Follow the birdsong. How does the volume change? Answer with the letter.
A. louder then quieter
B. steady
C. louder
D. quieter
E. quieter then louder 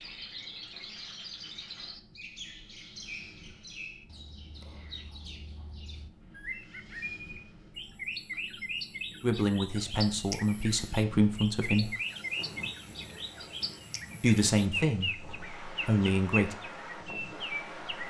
C.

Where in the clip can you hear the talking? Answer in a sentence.
The talking can be heard from 9.2 to 11.9 s and from 14.2 to 16.6 s.